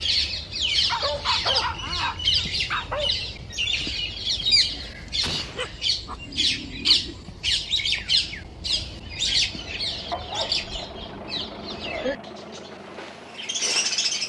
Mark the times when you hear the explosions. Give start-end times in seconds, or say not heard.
5.2-5.7.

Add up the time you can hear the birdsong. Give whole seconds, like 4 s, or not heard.
14 s.